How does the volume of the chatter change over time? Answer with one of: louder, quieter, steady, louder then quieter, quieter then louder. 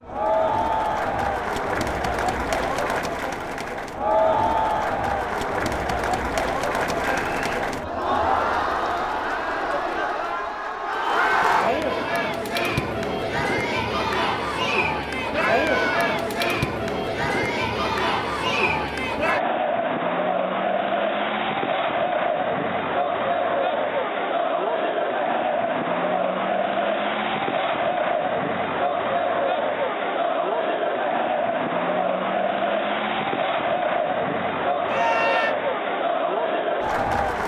steady.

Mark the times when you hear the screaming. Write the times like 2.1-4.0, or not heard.
7.0-7.5, 15.3-16.1, 34.9-35.5.